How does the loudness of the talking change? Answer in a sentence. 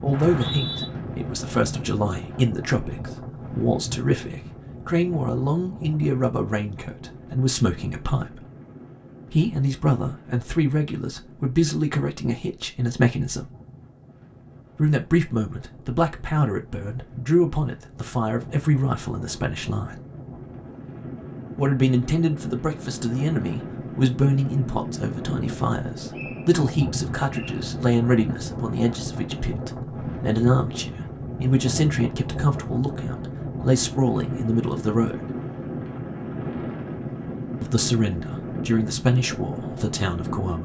The loudness of the talking stays about the same.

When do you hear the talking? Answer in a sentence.
You can hear the talking from 0.0 to 8.4 s, from 9.3 to 13.5 s, from 14.8 to 20.0 s, from 21.6 to 35.3 s and from 37.6 to 40.6 s.